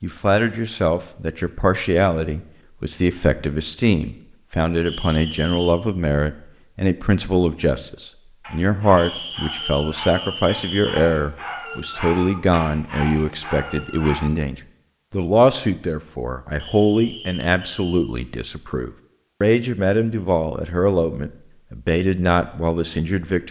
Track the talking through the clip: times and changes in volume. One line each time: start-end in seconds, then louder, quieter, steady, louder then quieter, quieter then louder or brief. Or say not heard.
0.0-23.4 steady.